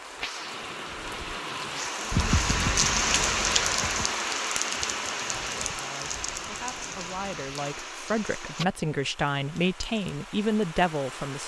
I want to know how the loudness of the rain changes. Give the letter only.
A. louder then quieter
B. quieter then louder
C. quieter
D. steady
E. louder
A.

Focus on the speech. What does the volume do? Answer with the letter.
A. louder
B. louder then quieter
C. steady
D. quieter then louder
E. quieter
A.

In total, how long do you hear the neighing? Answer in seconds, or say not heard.
2 s.